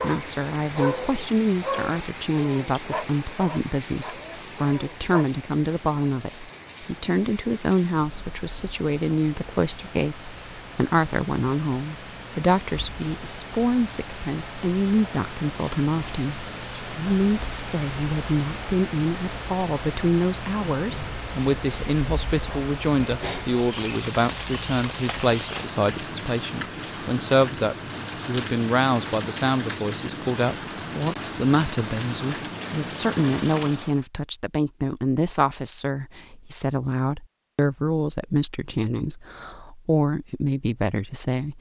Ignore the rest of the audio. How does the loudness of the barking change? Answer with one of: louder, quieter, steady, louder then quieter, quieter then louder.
quieter.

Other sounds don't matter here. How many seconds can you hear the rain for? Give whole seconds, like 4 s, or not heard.
34 s.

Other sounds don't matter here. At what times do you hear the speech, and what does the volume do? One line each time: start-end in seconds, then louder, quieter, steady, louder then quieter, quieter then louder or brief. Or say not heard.
0.0-41.5 steady.